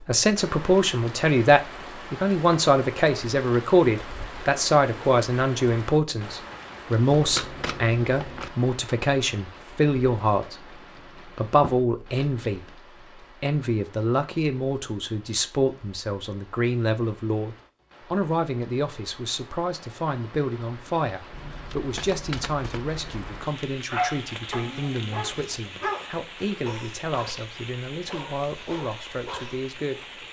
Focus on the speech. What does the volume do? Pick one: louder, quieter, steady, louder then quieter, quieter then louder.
quieter.